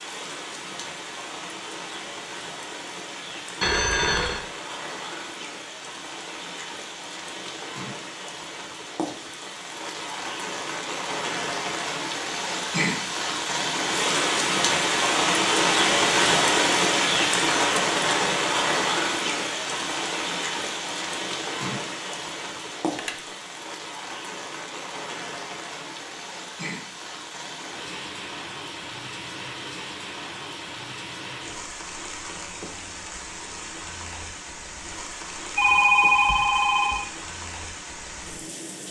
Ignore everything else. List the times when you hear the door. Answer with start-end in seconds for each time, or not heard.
not heard.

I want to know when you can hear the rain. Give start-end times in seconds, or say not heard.
0.0-38.8.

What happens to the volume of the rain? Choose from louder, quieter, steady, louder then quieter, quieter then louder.
louder then quieter.